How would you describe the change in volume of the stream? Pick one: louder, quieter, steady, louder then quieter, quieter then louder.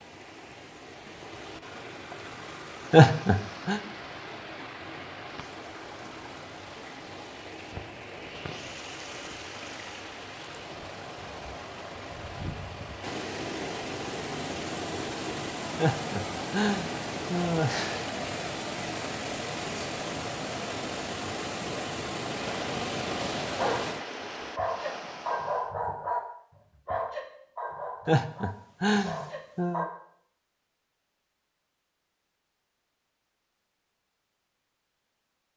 louder.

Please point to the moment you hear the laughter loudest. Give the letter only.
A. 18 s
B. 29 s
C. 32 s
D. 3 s
D.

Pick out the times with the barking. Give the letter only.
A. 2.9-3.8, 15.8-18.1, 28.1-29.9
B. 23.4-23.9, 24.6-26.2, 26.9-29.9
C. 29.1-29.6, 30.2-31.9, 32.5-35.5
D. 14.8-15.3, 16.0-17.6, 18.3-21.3
B.